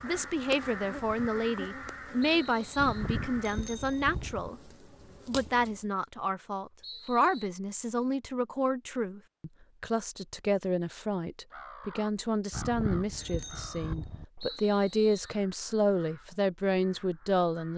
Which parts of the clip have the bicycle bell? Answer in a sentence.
The bicycle bell can be heard from 2.8 to 4.5 s and from 12.5 to 14.2 s.